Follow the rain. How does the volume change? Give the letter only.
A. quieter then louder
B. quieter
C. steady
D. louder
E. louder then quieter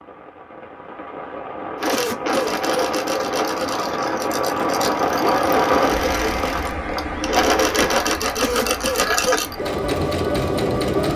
E.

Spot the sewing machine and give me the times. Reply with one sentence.
The sewing machine can be heard from 1.8 to 11.1 s.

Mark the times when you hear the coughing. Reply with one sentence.
The coughing can be heard from 1.9 to 3.0 s and from 8.4 to 9.6 s.